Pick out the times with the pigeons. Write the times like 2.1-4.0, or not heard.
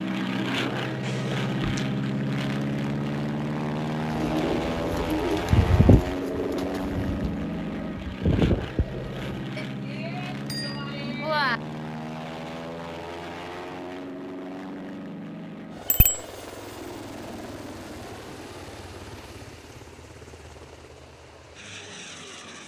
4.2-9.1.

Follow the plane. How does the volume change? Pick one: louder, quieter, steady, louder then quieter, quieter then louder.
quieter.